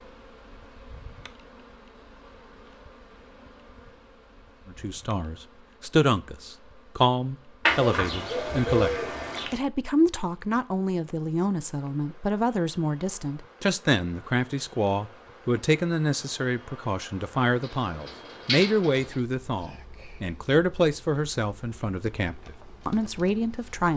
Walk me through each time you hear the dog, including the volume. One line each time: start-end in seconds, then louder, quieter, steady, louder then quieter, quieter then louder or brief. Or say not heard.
not heard.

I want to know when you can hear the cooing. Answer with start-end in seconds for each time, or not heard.
7.7-9.6, 17.6-19.2.